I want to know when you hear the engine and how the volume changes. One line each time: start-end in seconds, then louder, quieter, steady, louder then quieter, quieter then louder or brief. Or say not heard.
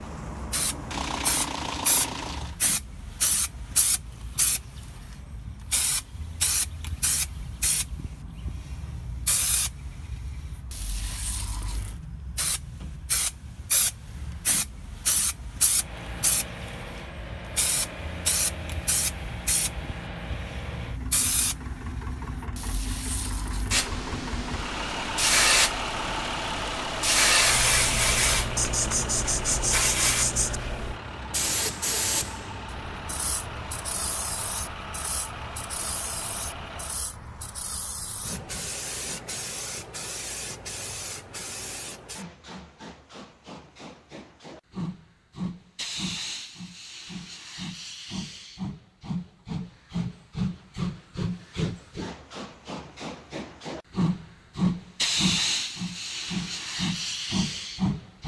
0.0-2.5 brief
15.7-37.0 louder then quieter.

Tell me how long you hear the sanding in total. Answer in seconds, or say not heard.
2 s.